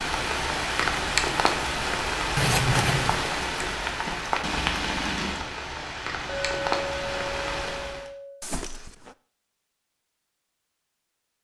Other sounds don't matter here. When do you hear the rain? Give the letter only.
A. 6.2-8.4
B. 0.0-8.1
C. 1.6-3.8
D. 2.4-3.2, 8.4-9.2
B.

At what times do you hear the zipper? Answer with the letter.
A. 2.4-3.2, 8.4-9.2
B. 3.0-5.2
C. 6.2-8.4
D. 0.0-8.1
A.